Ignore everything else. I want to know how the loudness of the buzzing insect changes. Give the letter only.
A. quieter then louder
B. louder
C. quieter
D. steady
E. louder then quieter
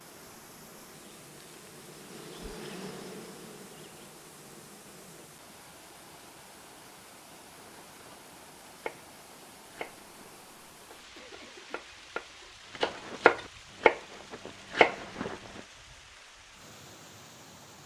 E.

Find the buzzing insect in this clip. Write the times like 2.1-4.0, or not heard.
0.0-5.3.